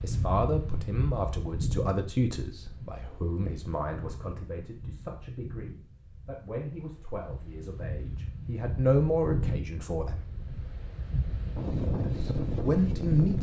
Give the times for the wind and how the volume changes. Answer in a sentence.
You can hear the wind from 0.0 to 13.3 s, getting quieter then louder.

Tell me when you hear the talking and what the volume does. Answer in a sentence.
The talking can be heard from 0.0 to 10.2 s, getting quieter then louder; and briefly from 12.0 to 13.3 s.